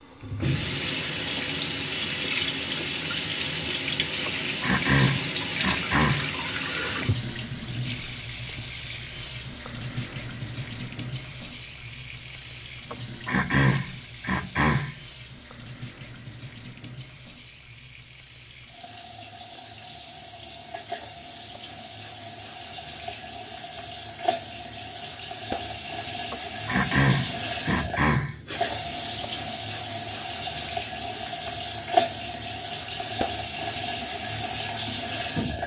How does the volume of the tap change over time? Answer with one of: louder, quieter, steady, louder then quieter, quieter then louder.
quieter then louder.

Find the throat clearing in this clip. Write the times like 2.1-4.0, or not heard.
4.2-6.3, 12.9-14.9, 26.3-28.4.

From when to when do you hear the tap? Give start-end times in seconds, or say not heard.
0.0-35.6.